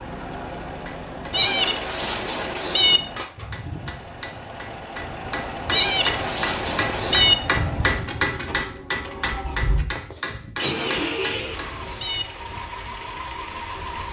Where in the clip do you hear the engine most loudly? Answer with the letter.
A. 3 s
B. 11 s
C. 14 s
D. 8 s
B.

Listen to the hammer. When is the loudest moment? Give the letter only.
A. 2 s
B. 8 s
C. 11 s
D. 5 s
B.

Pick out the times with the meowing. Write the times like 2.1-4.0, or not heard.
1.3-3.0, 5.7-7.3, 10.6-12.2.